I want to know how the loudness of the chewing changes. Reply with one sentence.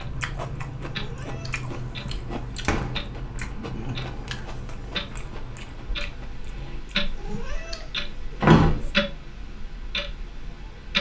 The volume of the chewing goes down.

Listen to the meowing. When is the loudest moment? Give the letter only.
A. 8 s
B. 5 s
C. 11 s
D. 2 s
A.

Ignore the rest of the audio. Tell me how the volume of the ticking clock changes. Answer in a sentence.
The volume of the ticking clock goes up.